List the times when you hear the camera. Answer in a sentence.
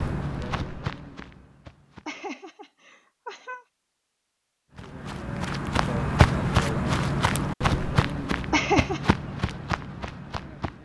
You can't hear the camera here.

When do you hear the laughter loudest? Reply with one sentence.
The volume of the laughter peaks at 9 seconds.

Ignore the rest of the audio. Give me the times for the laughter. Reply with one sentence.
The laughter can be heard from 2.0 to 3.6 s and from 8.5 to 9.1 s.